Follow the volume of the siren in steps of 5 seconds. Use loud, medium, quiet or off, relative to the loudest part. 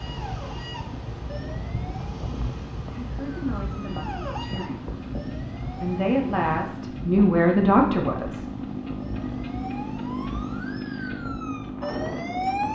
medium, medium, loud.